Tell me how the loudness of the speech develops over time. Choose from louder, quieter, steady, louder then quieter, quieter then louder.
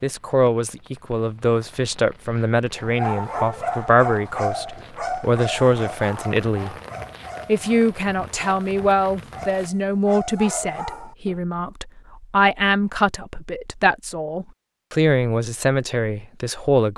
steady.